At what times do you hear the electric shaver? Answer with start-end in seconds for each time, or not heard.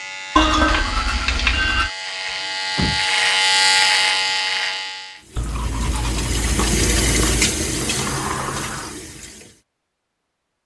0.0-5.2.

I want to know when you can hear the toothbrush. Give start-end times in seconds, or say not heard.
0.3-1.9, 5.3-7.5.